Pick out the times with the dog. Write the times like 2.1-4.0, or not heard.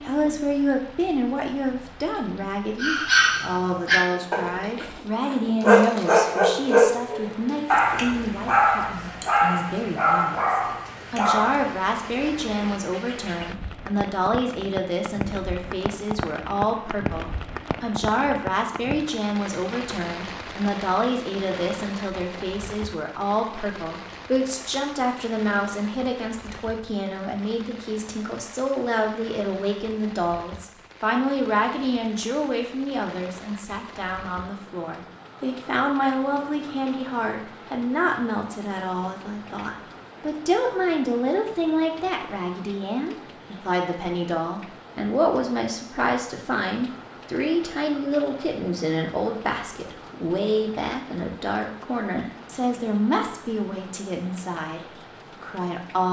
2.8-11.7.